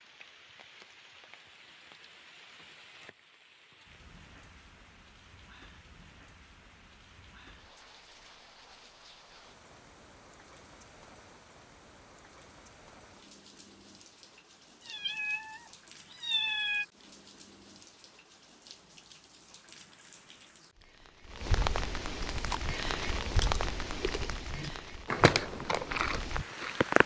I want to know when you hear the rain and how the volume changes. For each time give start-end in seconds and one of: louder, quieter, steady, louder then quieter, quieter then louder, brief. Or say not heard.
0.0-27.0 louder.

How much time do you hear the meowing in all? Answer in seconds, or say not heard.
2 s.